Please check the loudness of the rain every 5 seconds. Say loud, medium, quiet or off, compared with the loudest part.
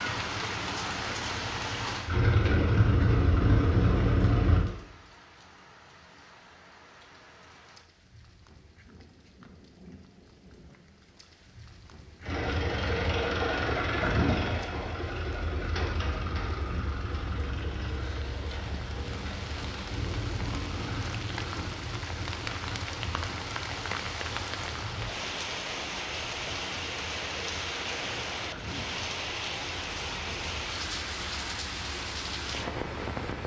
loud, quiet, quiet, medium, loud, loud, loud.